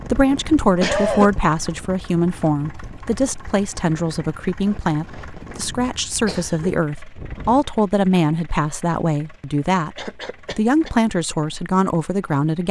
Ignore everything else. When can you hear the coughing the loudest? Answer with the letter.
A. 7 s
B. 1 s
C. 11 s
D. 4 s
B.